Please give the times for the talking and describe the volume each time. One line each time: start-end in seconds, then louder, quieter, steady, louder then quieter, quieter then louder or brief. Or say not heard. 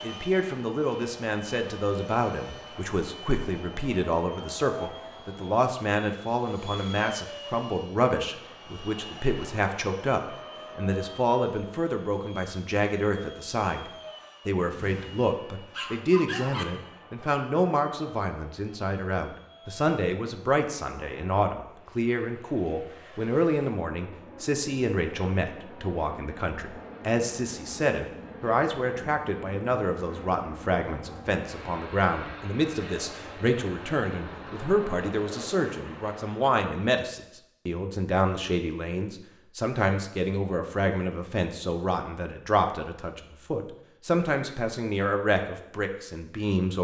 0.0-46.7 steady.